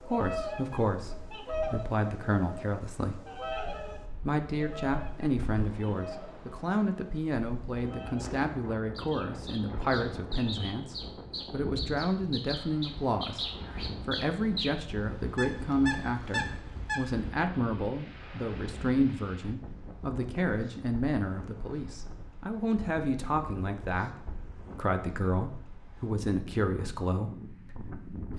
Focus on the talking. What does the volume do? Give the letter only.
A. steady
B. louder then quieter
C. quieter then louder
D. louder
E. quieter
A.